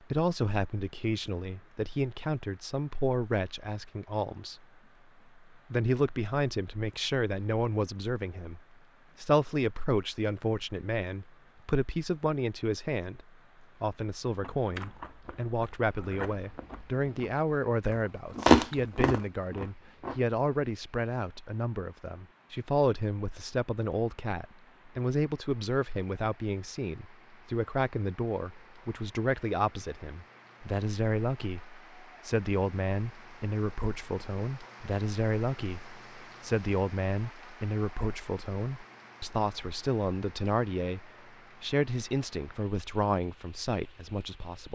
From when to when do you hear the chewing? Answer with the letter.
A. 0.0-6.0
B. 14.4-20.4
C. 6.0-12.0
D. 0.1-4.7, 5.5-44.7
B.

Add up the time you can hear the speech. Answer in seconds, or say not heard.
44 s.